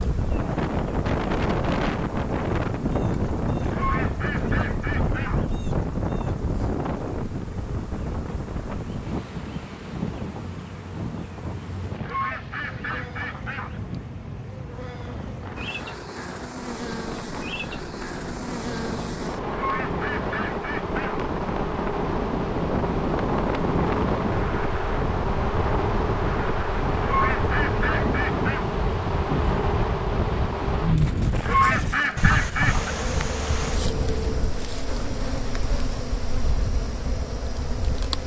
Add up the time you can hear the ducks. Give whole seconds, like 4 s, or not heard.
9 s.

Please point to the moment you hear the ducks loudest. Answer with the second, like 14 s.
32 s.